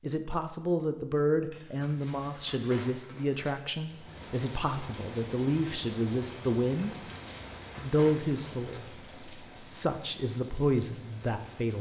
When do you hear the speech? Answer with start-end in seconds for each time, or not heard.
0.0-7.0, 7.8-11.7.